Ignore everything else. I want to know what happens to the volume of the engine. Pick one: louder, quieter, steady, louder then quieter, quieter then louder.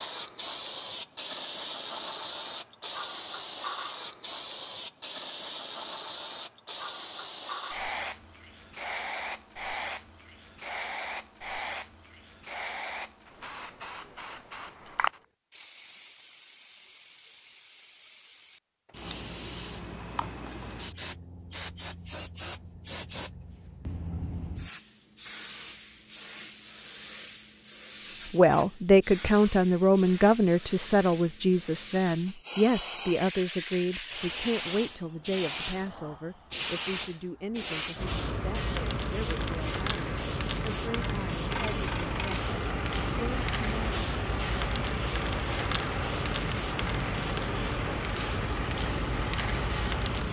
steady.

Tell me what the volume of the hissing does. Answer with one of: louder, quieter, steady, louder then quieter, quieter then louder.
quieter then louder.